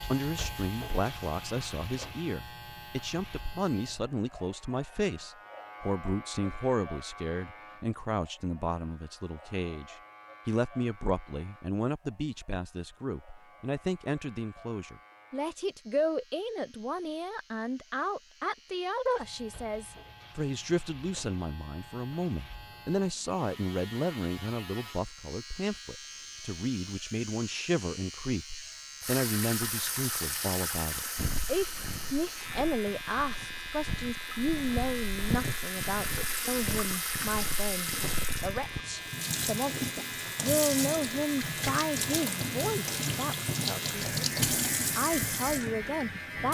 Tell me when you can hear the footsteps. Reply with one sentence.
The footsteps can be heard from 31.1 to 38.8 s.